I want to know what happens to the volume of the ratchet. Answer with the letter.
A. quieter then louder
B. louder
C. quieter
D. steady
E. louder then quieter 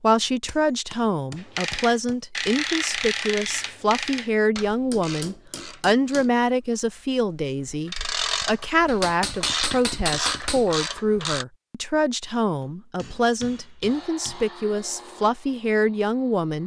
A.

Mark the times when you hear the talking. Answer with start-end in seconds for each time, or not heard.
0.0-16.6.